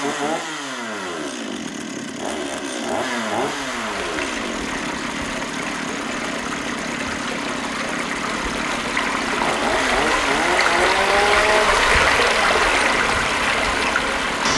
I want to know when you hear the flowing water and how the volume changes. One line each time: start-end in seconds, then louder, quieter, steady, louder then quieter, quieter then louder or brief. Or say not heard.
3.5-14.5 louder.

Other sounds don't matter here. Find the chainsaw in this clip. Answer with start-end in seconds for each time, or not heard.
0.0-14.5.